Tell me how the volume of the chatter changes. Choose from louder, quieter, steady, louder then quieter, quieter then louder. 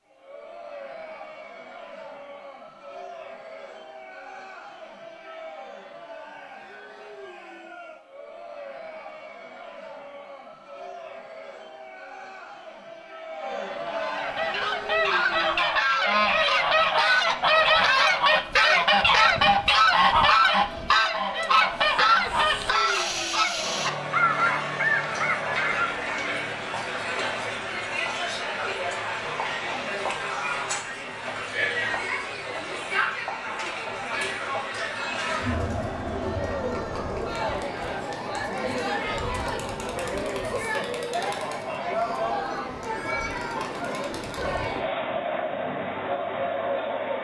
louder.